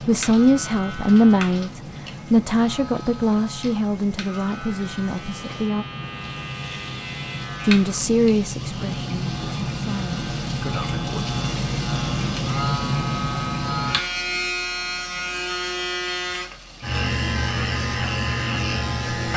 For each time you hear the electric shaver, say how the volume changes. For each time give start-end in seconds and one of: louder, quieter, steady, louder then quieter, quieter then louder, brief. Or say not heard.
0.0-19.3 louder.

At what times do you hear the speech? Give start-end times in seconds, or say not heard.
0.1-5.8, 7.7-11.2.